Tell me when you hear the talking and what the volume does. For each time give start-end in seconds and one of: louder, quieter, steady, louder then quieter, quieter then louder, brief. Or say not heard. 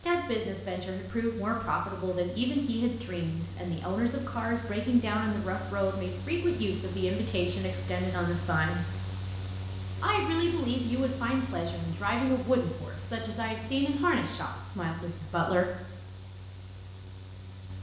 0.0-8.8 steady
10.0-15.7 quieter.